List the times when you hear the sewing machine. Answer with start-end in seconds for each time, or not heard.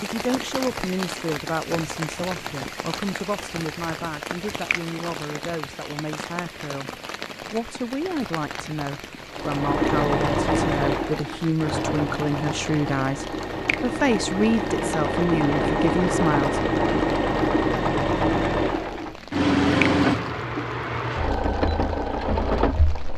9.3-23.1.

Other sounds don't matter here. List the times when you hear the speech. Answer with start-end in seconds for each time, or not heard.
0.0-16.6.